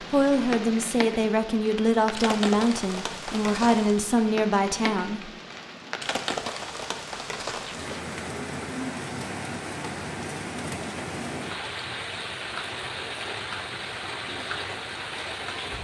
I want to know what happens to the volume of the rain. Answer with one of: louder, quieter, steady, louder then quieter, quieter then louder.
steady.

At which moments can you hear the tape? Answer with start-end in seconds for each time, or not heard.
7.6-8.1.